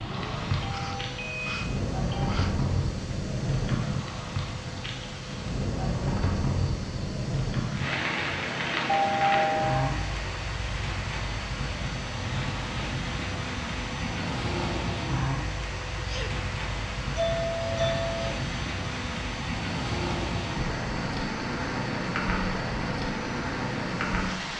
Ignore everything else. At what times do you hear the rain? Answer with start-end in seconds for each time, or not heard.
0.0-24.5.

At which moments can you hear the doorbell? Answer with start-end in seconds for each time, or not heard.
0.6-2.4, 8.8-9.9, 17.1-18.4.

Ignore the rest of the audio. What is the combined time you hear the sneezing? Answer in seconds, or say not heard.
2 s.